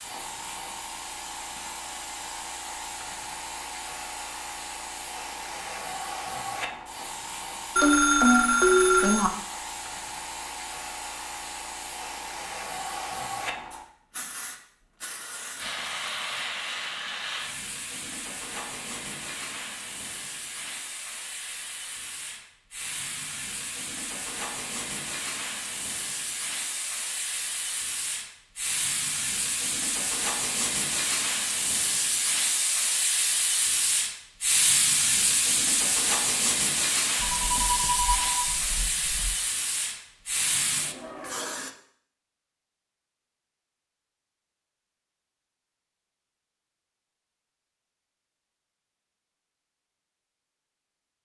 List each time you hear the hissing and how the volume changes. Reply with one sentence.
The hissing can be heard from 0.0 to 41.7 s, getting louder.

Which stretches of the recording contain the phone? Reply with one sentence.
The phone can be heard from 7.8 to 9.3 s and from 37.1 to 39.4 s.